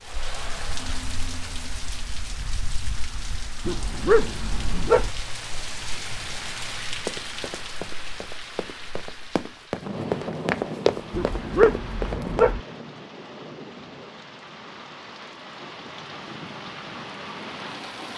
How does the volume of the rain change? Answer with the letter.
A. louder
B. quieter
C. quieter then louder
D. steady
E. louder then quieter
D.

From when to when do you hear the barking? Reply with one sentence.
You can hear the barking from 3.6 to 5.1 s and from 11.1 to 12.6 s.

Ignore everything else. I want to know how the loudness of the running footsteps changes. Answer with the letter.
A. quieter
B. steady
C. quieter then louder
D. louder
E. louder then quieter
D.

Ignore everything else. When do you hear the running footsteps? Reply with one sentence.
You can hear the running footsteps from 7.0 to 12.6 s.